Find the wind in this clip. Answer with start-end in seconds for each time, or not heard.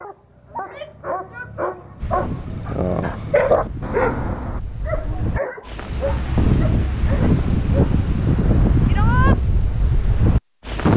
2.0-10.9.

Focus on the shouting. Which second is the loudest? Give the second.
9 s.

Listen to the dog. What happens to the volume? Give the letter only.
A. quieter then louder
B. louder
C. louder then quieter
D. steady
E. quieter
C.